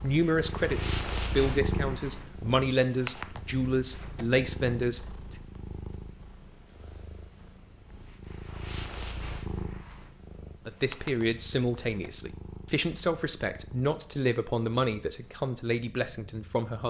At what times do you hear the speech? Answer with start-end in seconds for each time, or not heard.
0.0-5.3, 10.7-16.8.